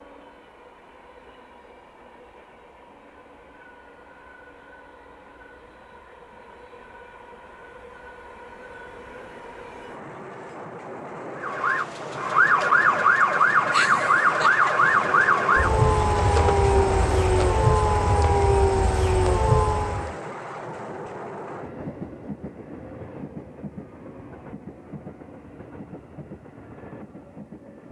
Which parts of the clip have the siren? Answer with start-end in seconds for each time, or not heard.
11.4-20.1.